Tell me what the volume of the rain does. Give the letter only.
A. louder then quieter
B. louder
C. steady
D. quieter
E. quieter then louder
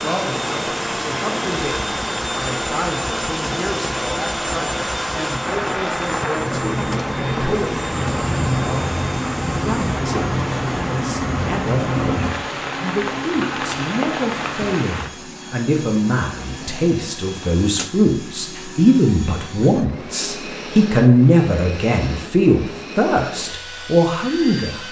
B.